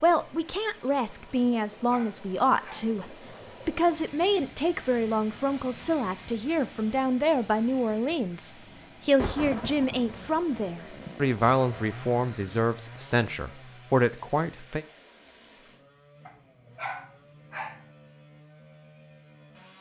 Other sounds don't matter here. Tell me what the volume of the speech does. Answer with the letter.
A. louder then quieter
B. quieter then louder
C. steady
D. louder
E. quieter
C.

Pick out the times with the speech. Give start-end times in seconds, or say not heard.
0.0-14.8.